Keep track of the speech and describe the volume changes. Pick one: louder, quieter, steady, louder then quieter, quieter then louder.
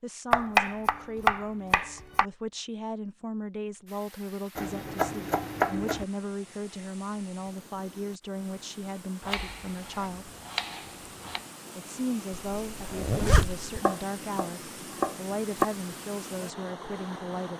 steady.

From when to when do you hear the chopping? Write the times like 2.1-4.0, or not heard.
0.3-2.2, 4.5-6.0, 9.2-11.4, 13.8-15.7.